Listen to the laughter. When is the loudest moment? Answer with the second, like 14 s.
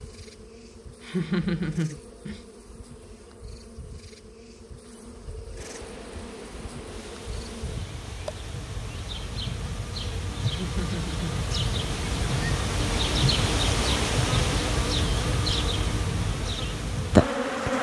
1 s.